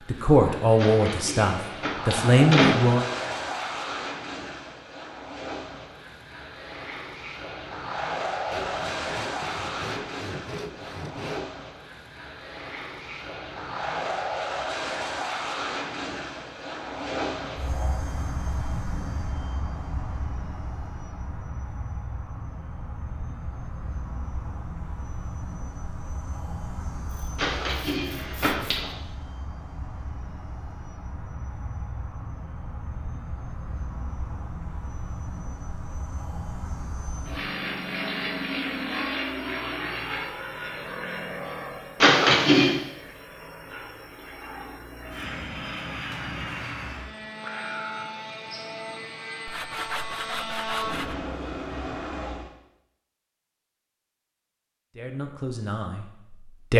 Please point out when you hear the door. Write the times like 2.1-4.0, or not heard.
0.8-2.8, 27.4-28.9, 42.0-42.8.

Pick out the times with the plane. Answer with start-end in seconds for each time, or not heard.
0.0-52.5.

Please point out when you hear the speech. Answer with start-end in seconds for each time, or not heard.
0.1-3.1, 55.0-56.7.